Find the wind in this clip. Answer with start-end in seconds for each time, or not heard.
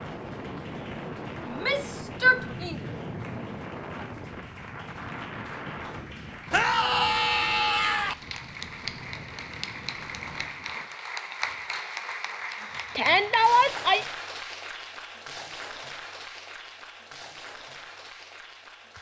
0.0-10.8.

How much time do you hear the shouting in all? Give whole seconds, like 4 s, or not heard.
4 s.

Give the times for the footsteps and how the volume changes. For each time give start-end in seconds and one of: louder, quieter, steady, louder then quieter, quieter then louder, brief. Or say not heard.
not heard.